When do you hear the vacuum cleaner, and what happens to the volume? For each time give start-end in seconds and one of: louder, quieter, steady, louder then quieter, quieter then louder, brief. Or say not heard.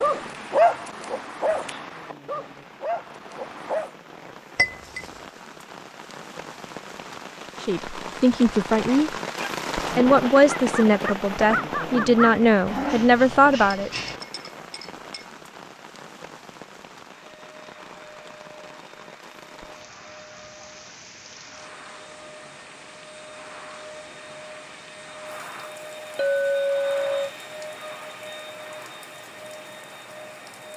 17.1-30.7 louder.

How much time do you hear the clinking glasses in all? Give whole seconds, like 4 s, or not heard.
3 s.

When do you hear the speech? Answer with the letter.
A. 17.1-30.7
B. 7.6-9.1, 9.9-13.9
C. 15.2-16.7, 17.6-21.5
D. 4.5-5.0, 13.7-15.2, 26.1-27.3
B.